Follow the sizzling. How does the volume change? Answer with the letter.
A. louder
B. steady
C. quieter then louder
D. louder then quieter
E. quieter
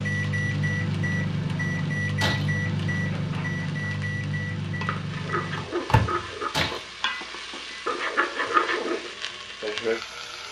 A.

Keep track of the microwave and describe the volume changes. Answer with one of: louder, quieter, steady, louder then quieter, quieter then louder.
quieter.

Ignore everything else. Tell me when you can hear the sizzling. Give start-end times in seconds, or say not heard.
0.0-10.4.